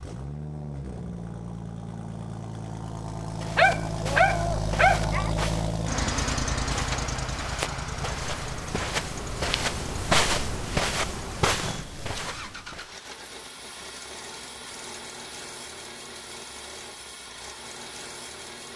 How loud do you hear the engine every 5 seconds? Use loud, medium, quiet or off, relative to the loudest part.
loud, loud, medium, medium.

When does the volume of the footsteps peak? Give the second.
10 s.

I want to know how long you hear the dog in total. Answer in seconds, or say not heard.
2 s.